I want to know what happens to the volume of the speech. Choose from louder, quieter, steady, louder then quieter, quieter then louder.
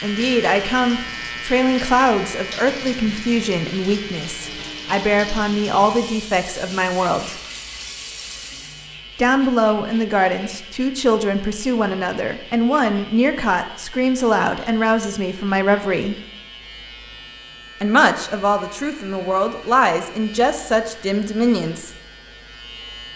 steady.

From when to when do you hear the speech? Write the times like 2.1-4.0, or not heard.
0.0-7.3, 9.2-16.1, 17.8-21.9.